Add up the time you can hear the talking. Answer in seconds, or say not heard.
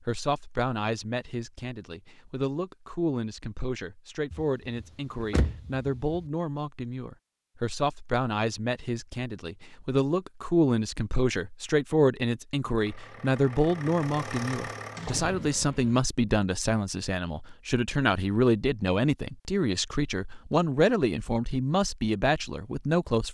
23 s.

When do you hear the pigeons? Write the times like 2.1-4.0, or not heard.
not heard.